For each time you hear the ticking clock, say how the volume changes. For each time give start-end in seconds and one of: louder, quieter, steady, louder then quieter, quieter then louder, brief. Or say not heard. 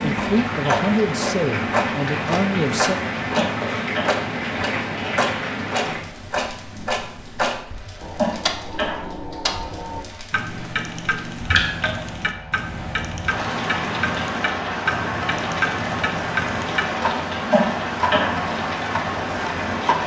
0.0-19.9 steady.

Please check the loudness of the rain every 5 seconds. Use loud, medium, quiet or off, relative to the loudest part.
loud, medium, loud, loud.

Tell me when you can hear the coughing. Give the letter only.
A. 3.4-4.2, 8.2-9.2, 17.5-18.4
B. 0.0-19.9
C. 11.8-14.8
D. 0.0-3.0
A.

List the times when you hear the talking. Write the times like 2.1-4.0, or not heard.
0.0-3.0.